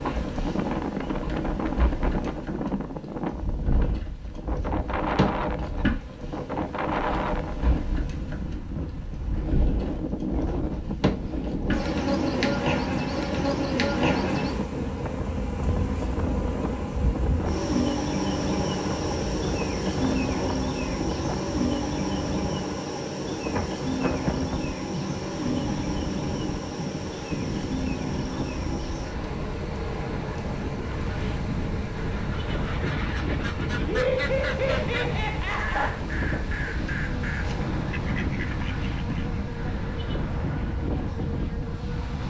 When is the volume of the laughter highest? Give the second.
34 s.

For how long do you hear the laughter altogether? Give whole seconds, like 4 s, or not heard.
2 s.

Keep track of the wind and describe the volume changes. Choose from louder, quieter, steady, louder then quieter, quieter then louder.
steady.